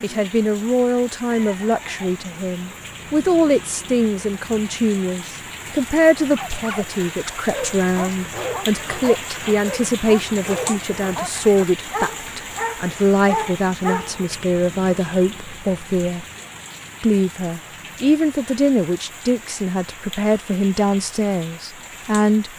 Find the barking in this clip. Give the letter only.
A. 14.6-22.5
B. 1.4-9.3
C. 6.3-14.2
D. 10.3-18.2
C.